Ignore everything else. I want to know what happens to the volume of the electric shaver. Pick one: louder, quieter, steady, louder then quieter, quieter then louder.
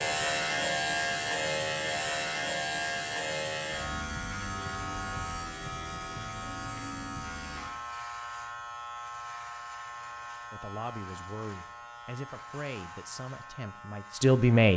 quieter.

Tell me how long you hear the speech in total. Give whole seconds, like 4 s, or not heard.
4 s.